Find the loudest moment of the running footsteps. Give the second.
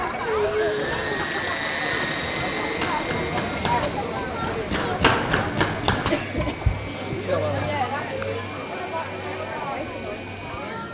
5 s.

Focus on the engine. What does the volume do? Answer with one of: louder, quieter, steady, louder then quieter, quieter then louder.
quieter.